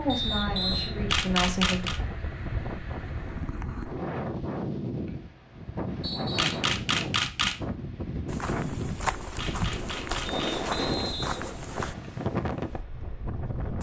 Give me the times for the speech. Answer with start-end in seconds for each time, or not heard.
0.0-1.9.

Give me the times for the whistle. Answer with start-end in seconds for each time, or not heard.
0.1-0.9, 6.0-6.5, 10.2-12.1.